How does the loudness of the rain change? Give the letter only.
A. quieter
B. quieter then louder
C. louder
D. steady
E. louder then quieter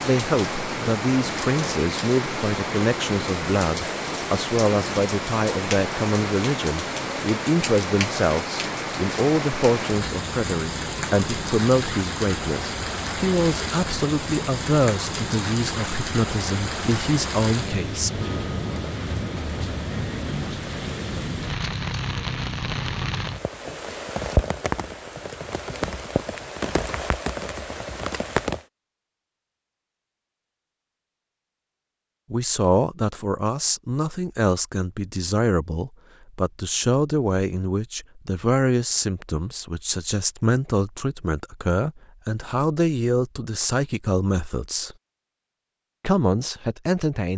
D.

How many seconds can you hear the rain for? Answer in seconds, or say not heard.
29 s.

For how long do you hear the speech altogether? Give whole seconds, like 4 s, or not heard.
32 s.